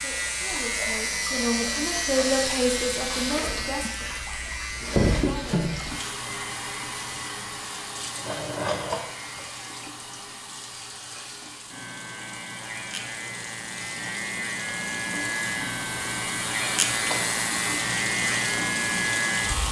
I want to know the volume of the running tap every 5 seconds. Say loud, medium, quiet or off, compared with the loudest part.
loud, loud, medium, loud.